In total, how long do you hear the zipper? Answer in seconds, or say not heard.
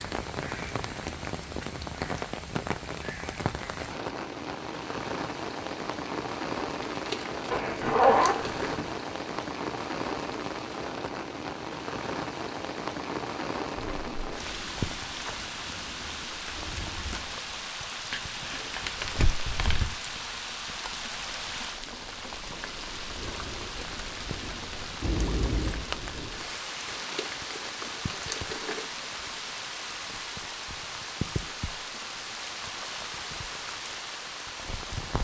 3 s.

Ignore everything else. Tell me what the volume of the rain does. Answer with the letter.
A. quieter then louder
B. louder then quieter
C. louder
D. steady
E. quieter
D.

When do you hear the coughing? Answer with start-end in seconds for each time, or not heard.
not heard.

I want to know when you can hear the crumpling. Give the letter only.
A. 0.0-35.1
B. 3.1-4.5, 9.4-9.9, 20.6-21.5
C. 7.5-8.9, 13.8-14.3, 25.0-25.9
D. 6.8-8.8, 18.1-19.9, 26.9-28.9
D.